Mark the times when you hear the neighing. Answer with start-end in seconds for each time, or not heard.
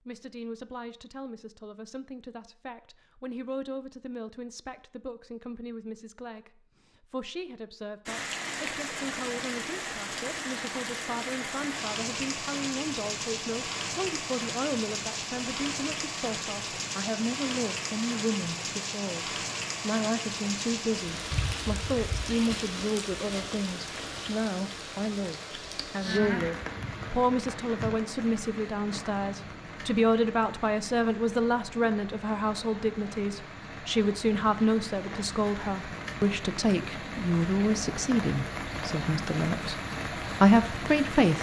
not heard.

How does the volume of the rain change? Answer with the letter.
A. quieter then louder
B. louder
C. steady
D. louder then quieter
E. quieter
A.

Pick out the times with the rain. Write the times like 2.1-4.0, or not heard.
8.1-41.3.